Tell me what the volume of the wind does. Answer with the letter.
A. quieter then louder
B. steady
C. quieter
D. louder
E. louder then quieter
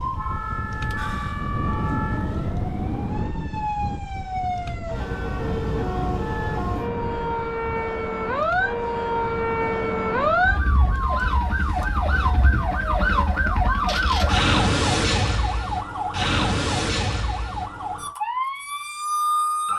C.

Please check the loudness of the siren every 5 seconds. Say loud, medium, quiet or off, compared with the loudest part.
medium, loud, loud, loud.